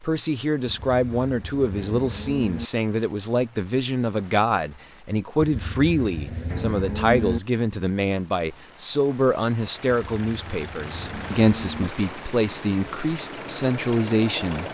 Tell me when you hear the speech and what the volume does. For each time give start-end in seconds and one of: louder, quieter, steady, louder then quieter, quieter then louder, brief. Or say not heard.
0.0-14.6 steady.